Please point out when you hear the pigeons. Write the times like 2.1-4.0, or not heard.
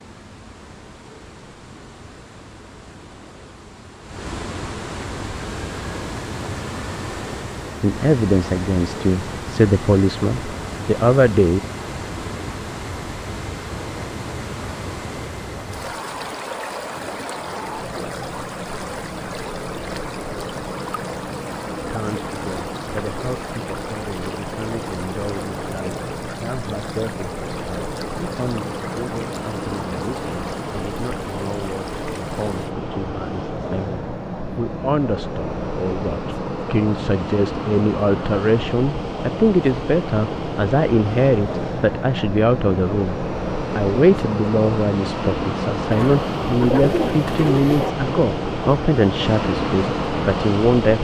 45.9-47.9.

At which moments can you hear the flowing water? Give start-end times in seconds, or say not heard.
0.0-32.8.